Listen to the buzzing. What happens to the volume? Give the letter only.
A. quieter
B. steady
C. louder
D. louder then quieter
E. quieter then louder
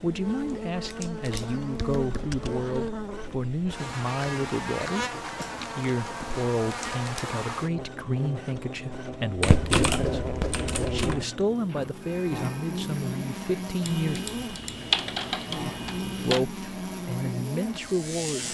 B.